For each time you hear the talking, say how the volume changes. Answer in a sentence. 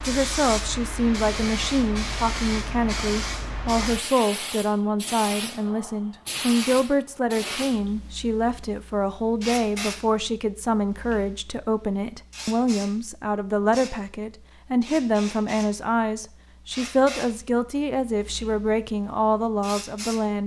The talking can be heard from 0.0 to 20.4 s, at a steady volume.